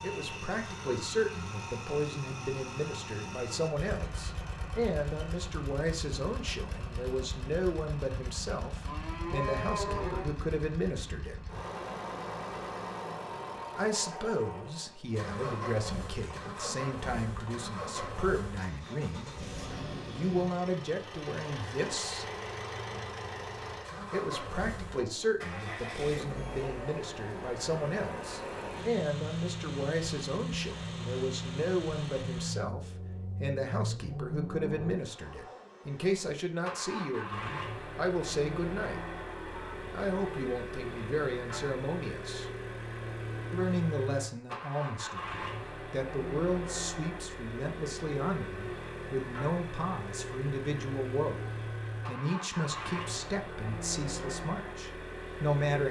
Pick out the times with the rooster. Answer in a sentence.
The rooster can't be heard in this clip.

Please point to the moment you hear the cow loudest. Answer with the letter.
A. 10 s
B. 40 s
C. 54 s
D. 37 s
A.